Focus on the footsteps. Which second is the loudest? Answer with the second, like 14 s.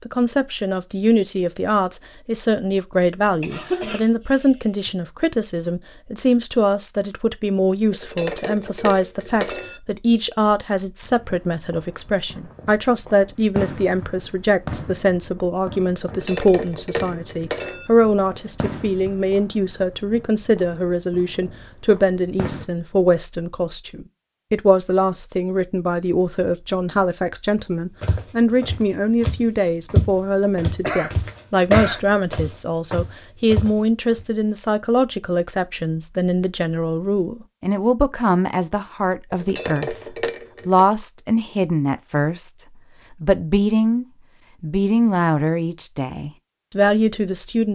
30 s.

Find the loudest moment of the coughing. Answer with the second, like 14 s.
32 s.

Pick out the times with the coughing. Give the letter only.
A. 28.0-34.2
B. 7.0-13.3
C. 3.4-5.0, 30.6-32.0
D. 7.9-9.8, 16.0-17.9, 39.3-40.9
C.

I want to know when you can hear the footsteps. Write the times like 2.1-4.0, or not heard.
28.0-34.2.